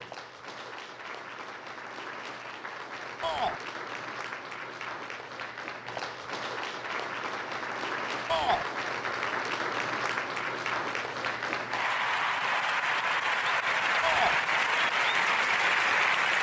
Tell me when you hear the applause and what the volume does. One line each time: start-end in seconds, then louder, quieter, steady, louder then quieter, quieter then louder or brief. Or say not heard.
0.0-16.3 louder.